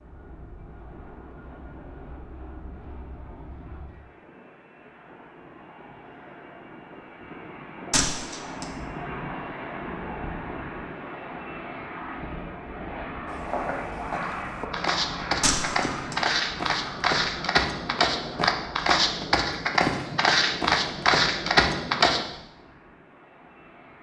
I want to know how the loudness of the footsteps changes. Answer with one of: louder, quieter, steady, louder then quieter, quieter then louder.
louder.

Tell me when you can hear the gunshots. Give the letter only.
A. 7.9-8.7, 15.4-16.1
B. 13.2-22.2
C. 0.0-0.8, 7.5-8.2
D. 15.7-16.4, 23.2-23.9
A.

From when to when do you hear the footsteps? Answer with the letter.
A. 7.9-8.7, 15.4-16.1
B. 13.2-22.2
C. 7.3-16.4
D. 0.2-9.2
B.